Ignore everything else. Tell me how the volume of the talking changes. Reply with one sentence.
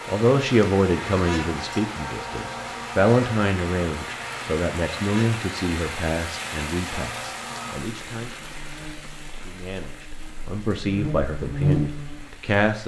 The loudness of the talking goes down, then up.